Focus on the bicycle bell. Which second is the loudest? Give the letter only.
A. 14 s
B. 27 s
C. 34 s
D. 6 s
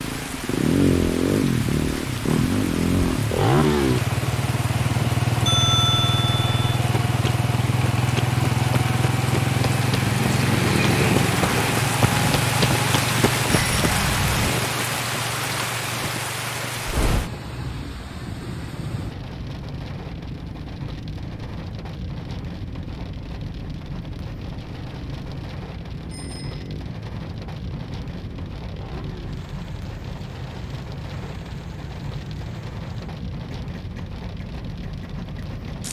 D.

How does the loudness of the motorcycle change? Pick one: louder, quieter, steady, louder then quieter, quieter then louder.
quieter.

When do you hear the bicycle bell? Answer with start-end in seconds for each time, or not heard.
5.5-6.8, 13.4-14.5, 26.1-26.6.